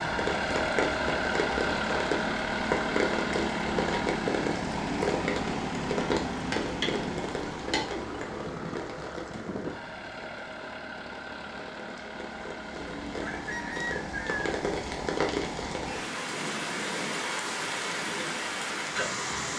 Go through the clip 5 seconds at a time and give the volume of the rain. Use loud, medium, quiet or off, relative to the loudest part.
loud, loud, medium, loud.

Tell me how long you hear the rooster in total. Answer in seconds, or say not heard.
2 s.